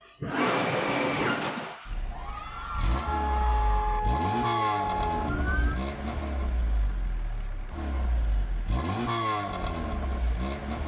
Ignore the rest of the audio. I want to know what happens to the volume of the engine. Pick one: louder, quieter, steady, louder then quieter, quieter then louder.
quieter then louder.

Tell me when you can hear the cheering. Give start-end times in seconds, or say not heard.
2.1-4.0.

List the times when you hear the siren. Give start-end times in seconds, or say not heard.
3.0-5.8.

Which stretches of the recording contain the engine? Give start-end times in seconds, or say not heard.
0.2-10.8.